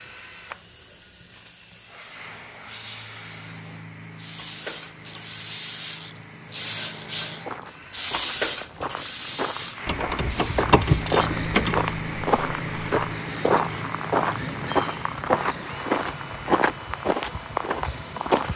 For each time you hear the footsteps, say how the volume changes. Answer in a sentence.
The footsteps can be heard from 7.2 to 18.5 s, getting louder.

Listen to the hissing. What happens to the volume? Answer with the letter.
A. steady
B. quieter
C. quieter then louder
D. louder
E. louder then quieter
E.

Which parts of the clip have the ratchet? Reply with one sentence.
You can hear the ratchet from 5.0 to 7.8 s and from 9.8 to 11.8 s.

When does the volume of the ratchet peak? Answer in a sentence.
The volume of the ratchet peaks at 11 seconds.